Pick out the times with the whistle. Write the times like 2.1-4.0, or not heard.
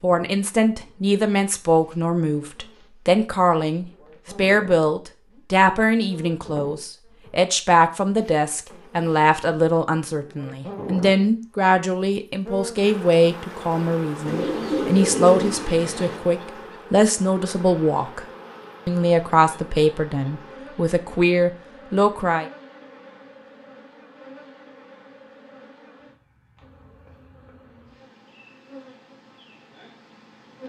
not heard.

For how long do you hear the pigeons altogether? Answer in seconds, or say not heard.
2 s.